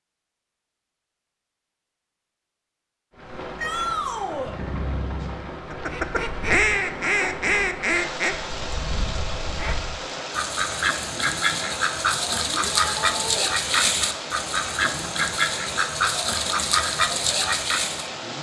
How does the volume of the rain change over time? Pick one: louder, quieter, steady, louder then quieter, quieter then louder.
steady.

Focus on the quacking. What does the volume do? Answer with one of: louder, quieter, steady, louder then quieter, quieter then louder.
quieter then louder.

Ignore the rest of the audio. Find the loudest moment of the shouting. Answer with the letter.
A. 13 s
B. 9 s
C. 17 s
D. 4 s
D.